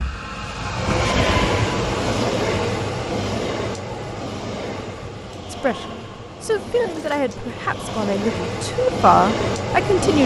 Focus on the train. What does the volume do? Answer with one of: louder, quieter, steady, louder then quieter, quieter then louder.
quieter then louder.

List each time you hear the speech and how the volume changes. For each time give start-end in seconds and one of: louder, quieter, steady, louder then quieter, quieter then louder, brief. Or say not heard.
5.5-10.2 louder.